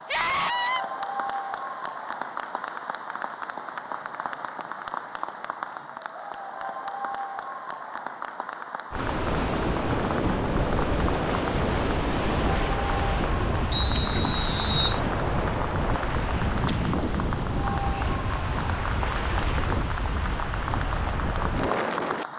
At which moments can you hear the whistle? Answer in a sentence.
You can hear the whistle from 13.7 to 15.0 s.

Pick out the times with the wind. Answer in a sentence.
You can hear the wind from 8.9 to 22.2 s.